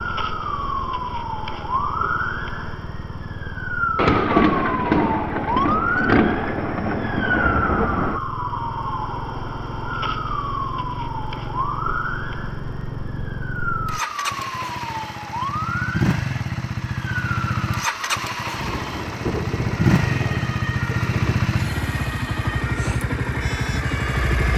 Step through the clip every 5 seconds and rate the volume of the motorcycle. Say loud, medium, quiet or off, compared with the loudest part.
quiet, medium, medium, loud, loud.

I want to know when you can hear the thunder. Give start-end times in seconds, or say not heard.
4.0-8.2, 18.6-21.5.